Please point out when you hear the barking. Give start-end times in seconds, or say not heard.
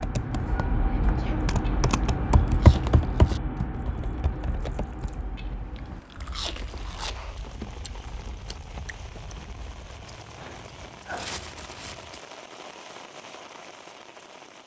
not heard.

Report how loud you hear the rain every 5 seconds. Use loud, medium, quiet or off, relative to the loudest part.
off, loud, loud.